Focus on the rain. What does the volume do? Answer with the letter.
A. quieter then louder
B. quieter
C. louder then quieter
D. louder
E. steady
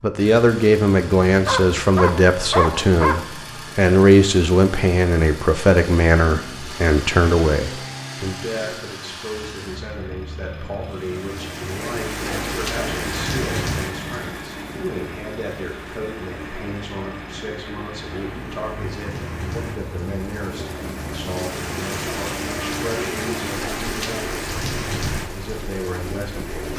A.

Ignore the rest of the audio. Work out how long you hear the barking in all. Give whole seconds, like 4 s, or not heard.
2 s.